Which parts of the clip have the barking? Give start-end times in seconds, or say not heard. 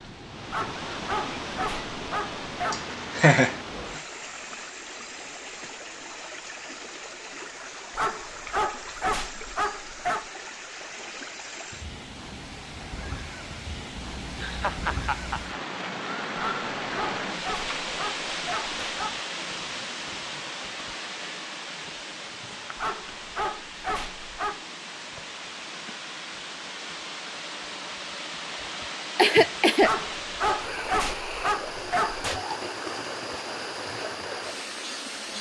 0.5-2.8, 8.0-10.2, 16.4-19.1, 22.8-24.6, 29.8-32.4.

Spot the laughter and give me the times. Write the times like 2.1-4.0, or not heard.
2.7-3.5, 14.2-15.6, 29.1-29.9.